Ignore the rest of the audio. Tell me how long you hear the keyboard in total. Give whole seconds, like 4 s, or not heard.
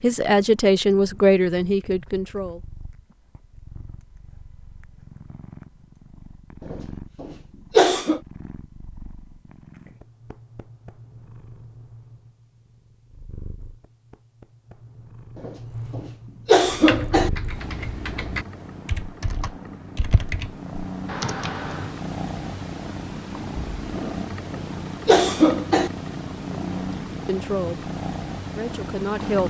5 s.